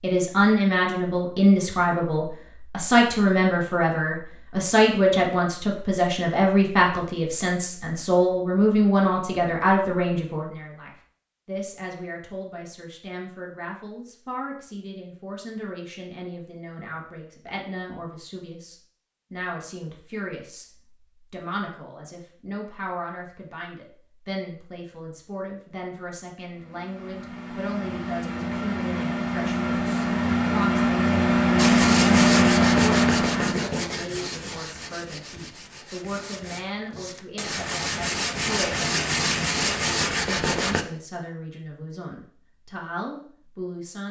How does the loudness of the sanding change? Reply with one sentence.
The loudness of the sanding goes down, then up.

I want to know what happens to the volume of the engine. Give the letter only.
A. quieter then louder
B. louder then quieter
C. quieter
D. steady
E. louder
E.